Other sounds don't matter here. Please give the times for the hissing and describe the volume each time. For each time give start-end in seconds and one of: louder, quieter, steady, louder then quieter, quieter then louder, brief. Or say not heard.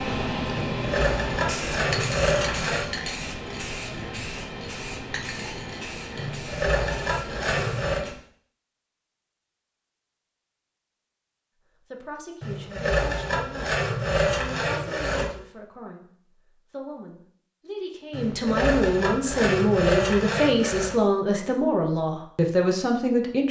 0.0-8.2 quieter.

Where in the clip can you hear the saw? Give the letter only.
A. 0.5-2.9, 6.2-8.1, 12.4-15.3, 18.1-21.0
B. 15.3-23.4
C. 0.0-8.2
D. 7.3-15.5
A.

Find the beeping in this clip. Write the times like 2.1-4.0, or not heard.
not heard.